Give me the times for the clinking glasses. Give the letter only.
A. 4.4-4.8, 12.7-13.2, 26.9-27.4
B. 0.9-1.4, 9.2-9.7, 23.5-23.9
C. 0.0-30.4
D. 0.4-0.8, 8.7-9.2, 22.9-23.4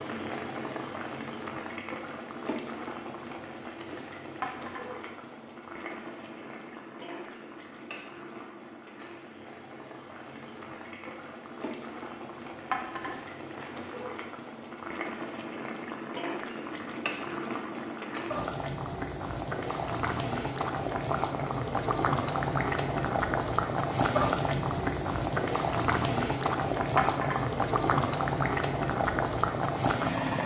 A.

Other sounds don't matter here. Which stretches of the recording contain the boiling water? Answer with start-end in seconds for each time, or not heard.
0.0-30.4.